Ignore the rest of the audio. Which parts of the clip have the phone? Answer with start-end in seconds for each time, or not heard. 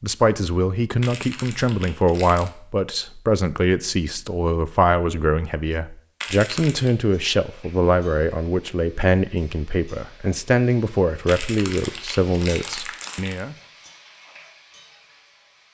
not heard.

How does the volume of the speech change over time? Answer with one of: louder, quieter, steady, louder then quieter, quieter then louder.
steady.